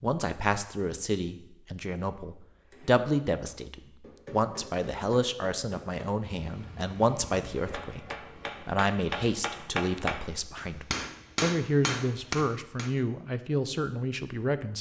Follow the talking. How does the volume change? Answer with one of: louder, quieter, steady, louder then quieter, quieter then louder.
steady.